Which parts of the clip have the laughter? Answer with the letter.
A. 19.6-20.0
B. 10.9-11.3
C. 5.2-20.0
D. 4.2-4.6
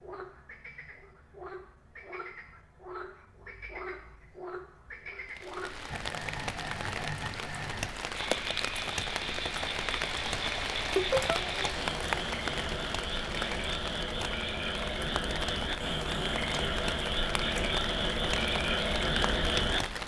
B.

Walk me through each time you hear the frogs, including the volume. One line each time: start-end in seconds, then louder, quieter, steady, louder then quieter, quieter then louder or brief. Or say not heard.
0.0-19.8 louder.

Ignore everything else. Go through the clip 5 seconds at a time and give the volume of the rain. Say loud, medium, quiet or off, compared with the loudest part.
off, loud, loud, loud.